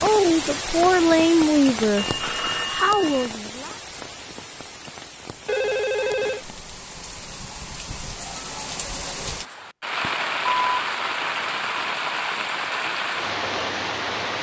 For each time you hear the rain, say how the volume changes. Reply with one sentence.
The rain can be heard from 0.0 to 14.3 s, getting quieter then louder.